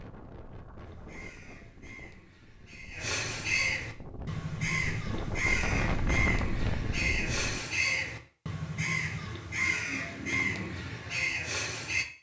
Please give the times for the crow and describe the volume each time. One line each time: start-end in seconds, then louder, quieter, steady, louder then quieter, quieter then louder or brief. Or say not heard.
0.8-12.1 louder.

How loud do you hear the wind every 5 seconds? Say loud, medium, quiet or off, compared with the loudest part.
quiet, loud, off.